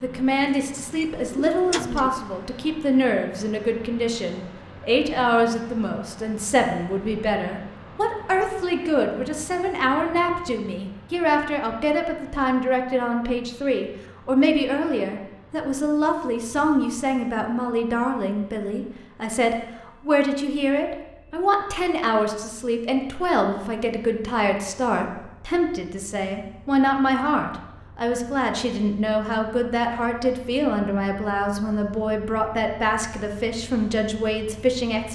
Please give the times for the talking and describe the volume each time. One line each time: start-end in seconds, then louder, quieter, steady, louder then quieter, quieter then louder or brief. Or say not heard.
0.0-35.1 steady.